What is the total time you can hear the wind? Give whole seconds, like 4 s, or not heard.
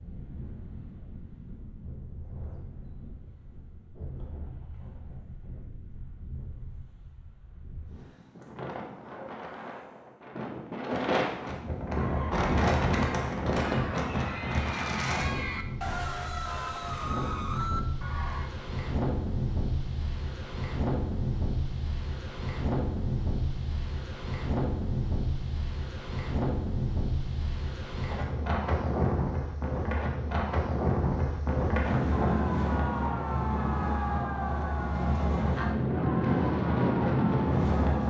38 s.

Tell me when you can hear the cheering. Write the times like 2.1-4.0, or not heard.
11.9-18.5, 32.2-38.0.